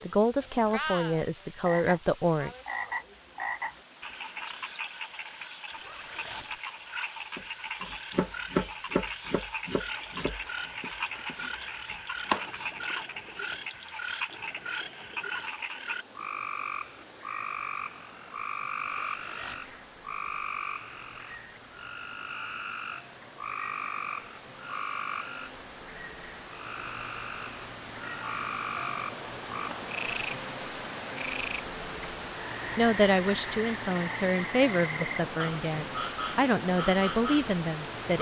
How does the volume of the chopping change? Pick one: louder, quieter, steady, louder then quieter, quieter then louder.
quieter then louder.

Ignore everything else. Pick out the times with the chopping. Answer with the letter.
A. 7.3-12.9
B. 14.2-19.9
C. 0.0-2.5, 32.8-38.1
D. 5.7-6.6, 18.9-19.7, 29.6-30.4
A.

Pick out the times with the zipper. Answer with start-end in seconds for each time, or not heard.
5.7-6.6, 18.9-19.7, 29.6-30.4.